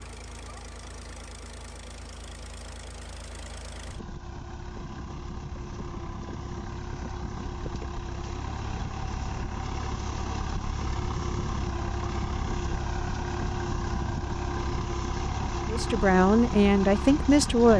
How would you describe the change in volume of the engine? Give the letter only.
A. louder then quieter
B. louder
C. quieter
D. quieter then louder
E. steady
B.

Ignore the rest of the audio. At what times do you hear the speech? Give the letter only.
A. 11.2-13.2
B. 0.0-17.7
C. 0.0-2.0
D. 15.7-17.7
D.